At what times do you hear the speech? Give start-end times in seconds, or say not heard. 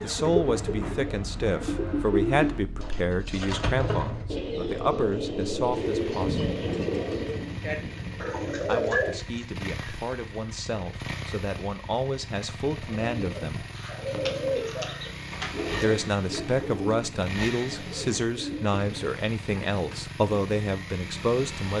0.0-6.5, 8.7-13.7, 15.8-21.7.